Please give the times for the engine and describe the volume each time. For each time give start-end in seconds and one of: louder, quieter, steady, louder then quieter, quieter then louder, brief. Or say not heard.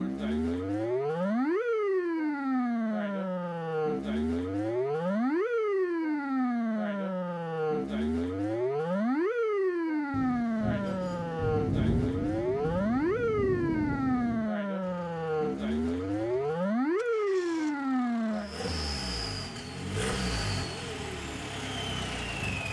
14.8-22.6 louder.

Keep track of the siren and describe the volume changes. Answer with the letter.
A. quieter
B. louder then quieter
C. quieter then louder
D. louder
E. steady
E.